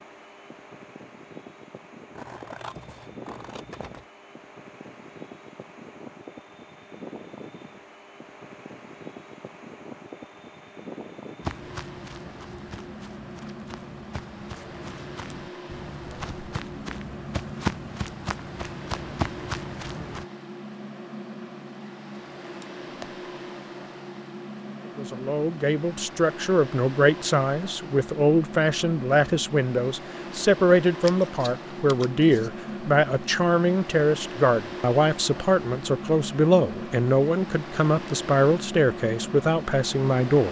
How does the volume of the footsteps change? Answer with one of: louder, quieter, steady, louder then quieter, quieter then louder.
louder.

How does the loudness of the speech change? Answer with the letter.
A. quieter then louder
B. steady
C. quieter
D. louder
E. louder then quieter
B.